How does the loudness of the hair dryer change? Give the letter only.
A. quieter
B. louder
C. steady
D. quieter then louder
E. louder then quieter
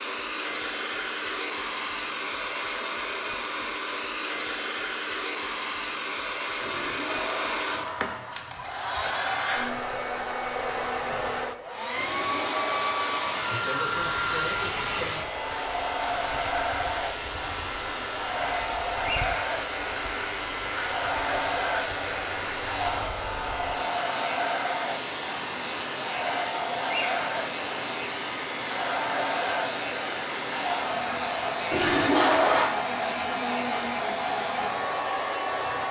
C.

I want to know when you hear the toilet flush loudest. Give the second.
32 s.